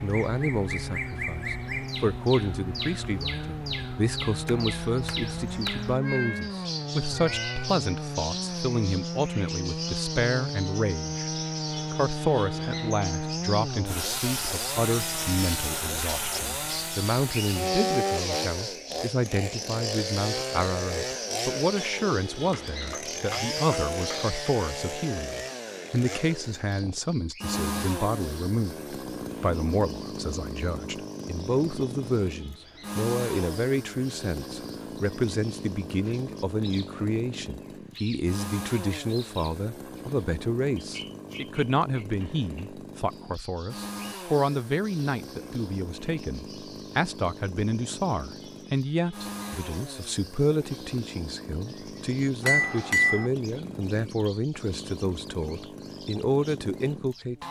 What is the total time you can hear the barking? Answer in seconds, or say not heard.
not heard.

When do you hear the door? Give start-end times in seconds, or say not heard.
not heard.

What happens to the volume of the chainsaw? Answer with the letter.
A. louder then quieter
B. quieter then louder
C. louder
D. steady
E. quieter
E.